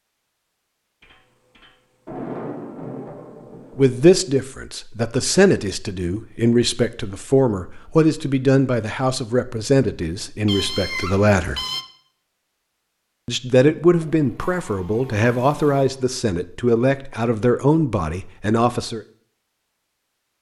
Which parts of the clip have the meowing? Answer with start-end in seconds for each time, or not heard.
10.4-11.8.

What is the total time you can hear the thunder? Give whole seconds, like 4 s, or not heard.
3 s.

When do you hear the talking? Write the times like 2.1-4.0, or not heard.
3.8-11.6, 13.2-19.0.